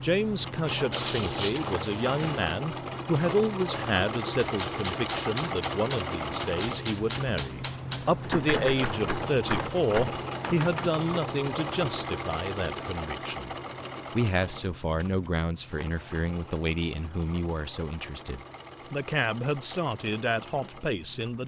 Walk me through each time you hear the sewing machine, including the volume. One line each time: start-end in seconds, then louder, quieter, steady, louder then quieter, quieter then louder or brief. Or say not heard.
0.0-21.4 quieter.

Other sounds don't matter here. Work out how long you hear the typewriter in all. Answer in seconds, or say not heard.
7 s.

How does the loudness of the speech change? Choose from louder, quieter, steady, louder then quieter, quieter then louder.
steady.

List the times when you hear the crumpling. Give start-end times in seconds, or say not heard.
0.9-2.4.